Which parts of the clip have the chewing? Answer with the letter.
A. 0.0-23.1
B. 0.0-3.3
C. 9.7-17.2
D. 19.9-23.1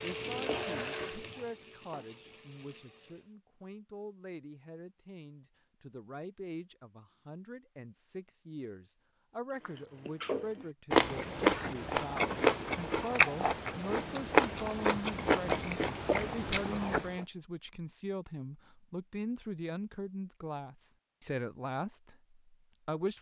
C.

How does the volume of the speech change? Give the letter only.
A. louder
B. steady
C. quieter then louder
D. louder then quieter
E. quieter
A.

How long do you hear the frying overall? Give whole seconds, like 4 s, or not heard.
3 s.